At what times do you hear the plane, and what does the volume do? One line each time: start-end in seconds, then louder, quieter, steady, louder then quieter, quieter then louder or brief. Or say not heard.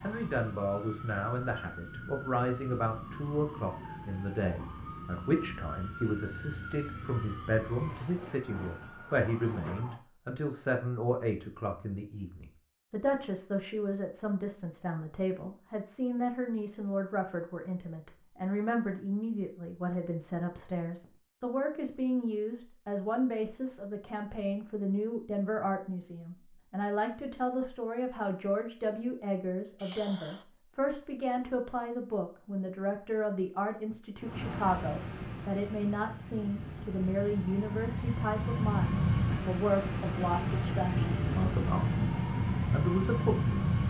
34.2-43.8 louder.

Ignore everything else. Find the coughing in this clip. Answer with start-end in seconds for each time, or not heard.
29.8-30.4.